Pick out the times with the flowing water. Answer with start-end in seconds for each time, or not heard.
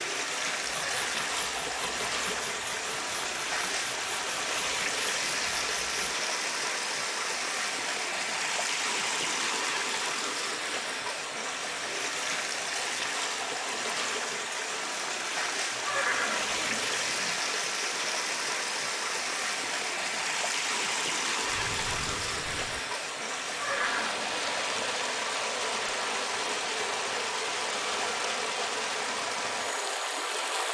0.0-30.6.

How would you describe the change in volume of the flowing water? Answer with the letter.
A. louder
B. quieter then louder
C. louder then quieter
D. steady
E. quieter
D.